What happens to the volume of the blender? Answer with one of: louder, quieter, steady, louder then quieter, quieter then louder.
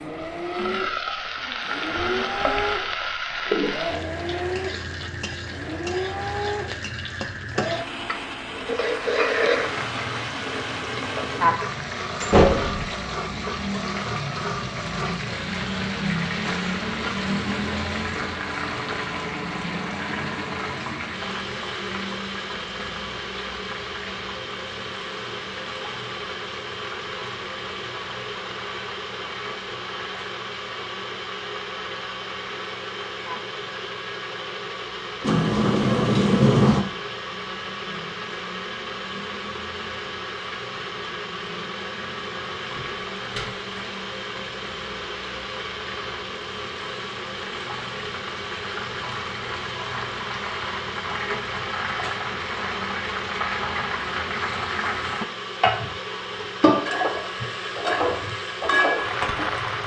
steady.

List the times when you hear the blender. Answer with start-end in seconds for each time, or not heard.
0.0-59.8.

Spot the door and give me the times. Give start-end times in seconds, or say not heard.
12.2-12.9, 35.2-36.9, 42.8-43.6.